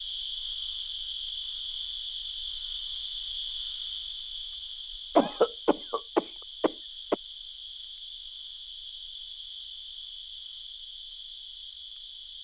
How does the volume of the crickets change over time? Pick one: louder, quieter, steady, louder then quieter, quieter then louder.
quieter.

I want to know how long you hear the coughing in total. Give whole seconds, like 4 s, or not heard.
2 s.